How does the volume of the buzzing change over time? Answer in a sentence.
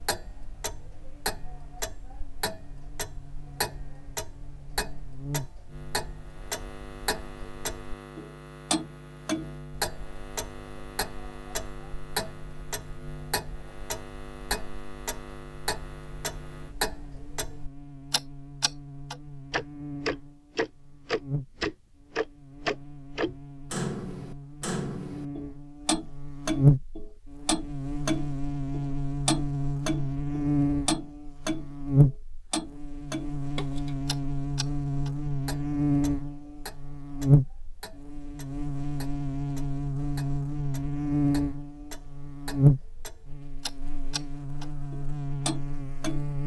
The volume of the buzzing goes up.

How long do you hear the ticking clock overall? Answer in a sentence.
You can hear the ticking clock for 46 seconds altogether.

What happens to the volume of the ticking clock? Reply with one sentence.
The volume of the ticking clock goes up, then down.